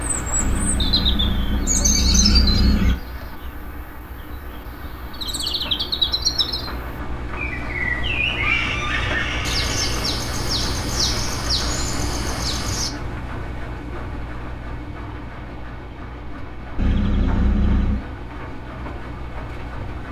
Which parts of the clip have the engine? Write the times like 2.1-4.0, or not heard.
0.0-20.0.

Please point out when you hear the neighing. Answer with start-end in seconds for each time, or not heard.
0.3-3.0, 8.4-10.2, 16.8-18.1.